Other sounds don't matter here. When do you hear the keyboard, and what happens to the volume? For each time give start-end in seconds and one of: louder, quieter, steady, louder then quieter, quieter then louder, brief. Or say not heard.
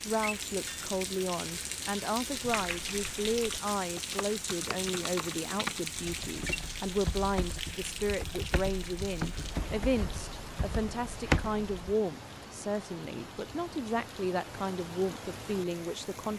2.4-11.9 louder.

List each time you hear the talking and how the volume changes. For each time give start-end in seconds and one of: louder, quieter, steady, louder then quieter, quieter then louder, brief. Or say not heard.
0.1-16.3 steady.